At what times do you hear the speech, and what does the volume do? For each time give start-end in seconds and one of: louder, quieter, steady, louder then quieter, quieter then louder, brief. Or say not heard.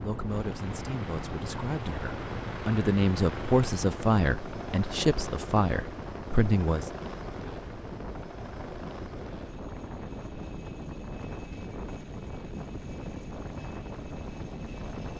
0.0-6.9 louder.